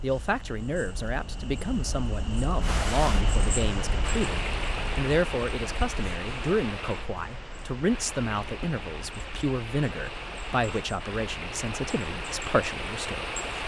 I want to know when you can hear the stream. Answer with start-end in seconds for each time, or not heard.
2.6-13.6.